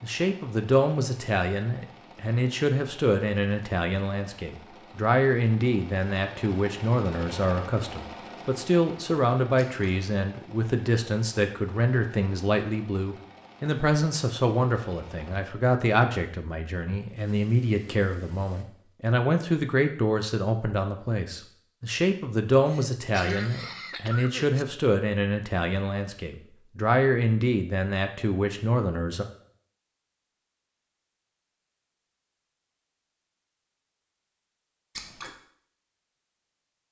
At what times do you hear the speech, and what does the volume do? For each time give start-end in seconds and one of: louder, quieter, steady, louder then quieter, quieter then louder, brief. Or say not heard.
0.0-29.2 steady.